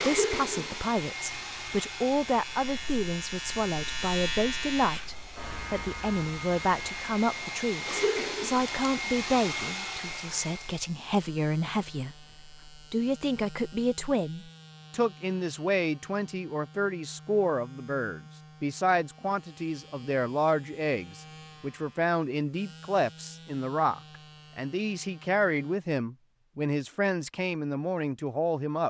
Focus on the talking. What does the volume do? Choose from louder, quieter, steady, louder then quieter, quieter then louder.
steady.